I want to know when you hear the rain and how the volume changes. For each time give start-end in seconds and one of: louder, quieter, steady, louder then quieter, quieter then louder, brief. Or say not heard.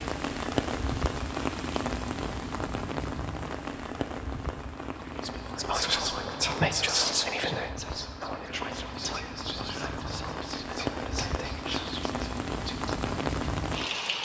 0.0-14.2 quieter then louder.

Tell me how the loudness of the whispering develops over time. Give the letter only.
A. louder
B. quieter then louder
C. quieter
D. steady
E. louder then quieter
C.